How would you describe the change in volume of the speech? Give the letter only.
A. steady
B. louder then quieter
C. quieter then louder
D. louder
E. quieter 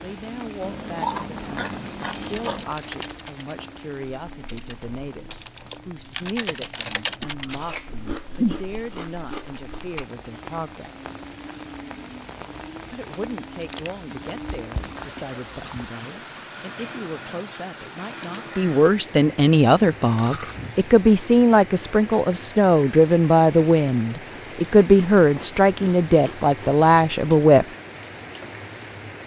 D.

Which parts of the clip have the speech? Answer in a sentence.
You can hear the speech from 0.0 to 11.2 s and from 12.9 to 27.6 s.